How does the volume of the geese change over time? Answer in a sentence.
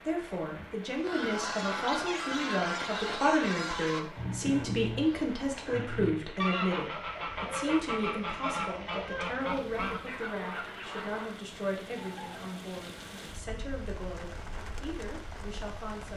The loudness of the geese stays about the same.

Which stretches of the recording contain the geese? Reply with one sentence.
The geese can be heard from 0.9 to 11.4 s.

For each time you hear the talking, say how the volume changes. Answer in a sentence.
You can hear the talking from 0.1 to 16.1 s, getting quieter.